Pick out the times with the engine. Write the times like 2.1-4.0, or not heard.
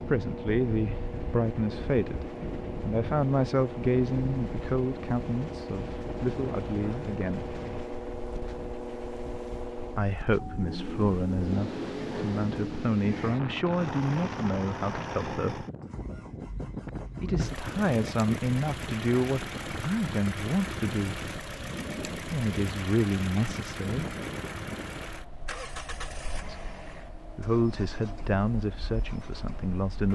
0.0-30.1.